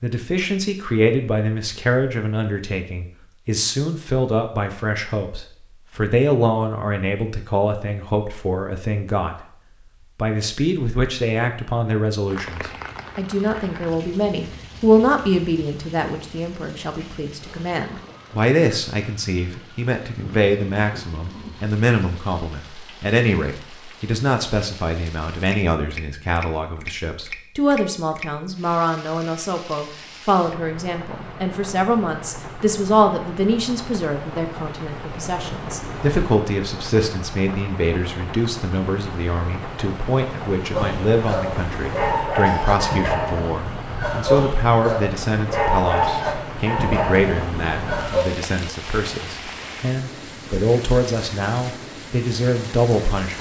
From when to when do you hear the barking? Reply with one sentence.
The barking can be heard from 40.7 to 48.2 s.